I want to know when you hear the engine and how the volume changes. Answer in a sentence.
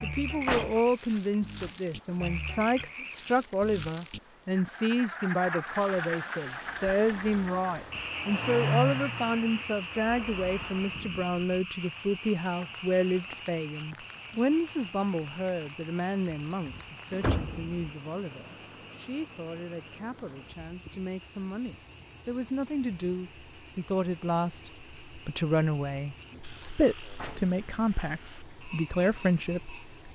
You can hear the engine from 6.5 to 11.1 s, getting louder then quieter.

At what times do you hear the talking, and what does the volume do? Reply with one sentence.
The talking can be heard from 0.0 to 30.1 s, getting quieter then louder.